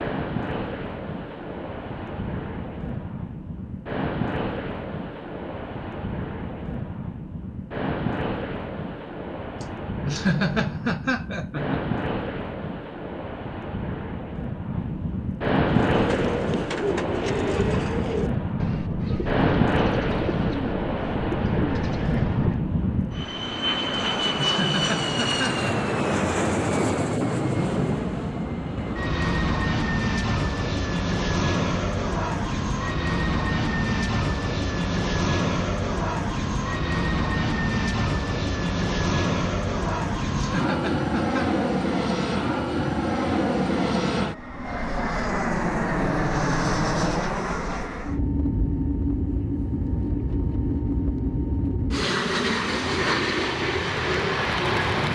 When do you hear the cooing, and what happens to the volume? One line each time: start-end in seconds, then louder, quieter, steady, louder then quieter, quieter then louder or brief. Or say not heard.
15.8-22.6 steady.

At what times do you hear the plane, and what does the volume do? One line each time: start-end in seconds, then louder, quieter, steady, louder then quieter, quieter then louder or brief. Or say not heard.
0.0-55.0 louder.